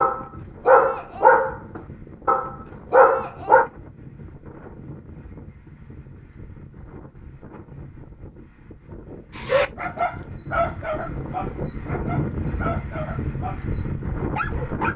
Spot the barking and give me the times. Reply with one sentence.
The barking can be heard from 0.0 to 3.7 s and from 9.3 to 14.9 s.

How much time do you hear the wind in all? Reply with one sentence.
The wind can be heard for 15 seconds in total.